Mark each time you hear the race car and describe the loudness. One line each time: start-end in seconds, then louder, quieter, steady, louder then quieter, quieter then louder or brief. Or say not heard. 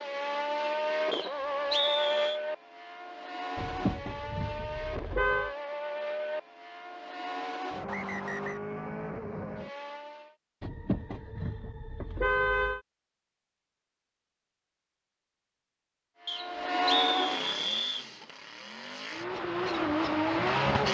0.0-10.3 quieter
16.2-20.9 quieter then louder.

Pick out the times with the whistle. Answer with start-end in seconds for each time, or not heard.
1.1-2.4, 7.8-8.6, 16.2-18.1.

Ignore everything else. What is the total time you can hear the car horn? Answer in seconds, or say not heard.
4 s.